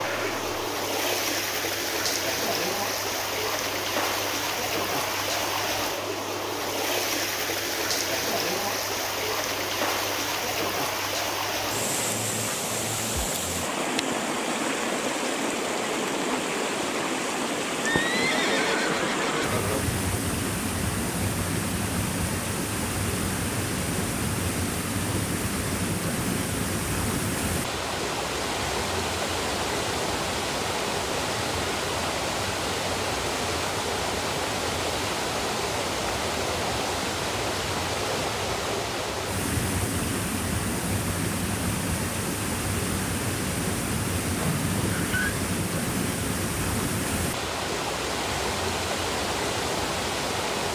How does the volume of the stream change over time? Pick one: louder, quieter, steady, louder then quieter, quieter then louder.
steady.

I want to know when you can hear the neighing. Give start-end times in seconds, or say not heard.
0.0-0.5, 17.9-19.9, 44.4-45.4.